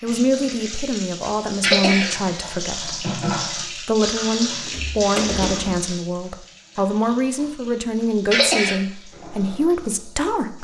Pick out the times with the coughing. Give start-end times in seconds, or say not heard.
1.6-2.5, 8.3-8.8.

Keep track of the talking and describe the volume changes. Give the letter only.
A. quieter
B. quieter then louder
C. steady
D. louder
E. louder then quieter
C.